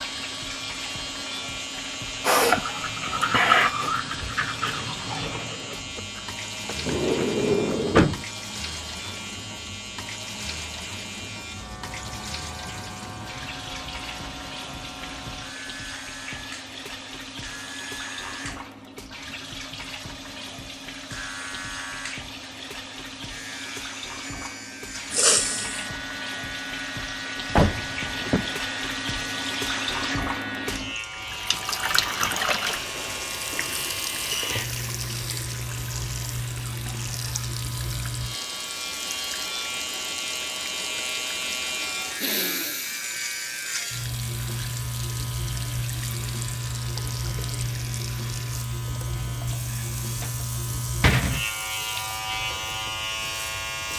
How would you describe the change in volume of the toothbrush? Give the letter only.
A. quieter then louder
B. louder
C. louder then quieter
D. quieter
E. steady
C.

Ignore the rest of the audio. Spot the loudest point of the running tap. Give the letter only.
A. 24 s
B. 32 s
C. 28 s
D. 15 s
B.